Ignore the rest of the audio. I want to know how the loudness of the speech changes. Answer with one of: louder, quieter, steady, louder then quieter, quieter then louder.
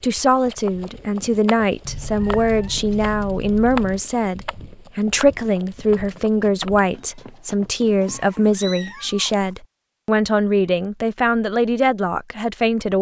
steady.